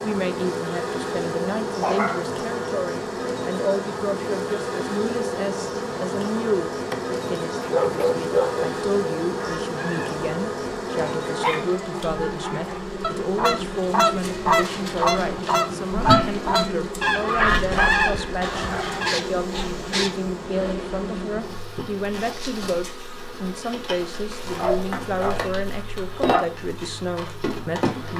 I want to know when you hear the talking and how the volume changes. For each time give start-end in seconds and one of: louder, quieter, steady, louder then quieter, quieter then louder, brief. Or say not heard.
0.0-28.1 steady.